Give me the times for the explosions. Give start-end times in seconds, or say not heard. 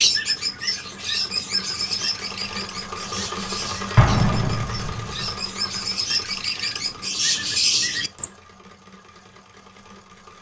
4.0-5.2.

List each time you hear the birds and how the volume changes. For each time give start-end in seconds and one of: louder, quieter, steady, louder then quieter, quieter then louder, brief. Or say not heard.
0.0-8.3 quieter then louder.